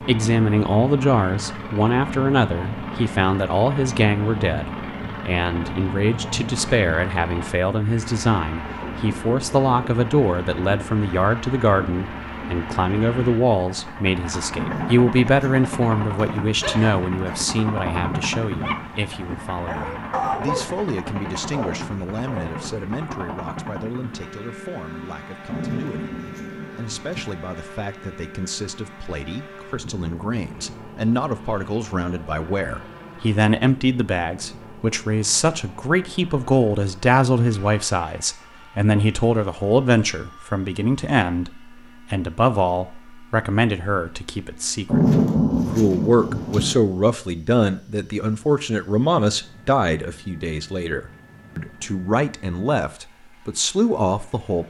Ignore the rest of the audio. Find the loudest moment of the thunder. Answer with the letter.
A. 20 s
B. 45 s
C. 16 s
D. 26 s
B.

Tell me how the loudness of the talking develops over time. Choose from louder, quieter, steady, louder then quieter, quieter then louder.
quieter then louder.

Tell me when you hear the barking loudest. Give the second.
20 s.